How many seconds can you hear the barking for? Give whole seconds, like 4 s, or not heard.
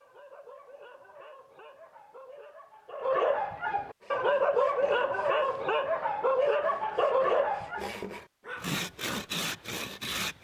9 s.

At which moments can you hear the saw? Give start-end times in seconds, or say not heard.
4.0-10.4.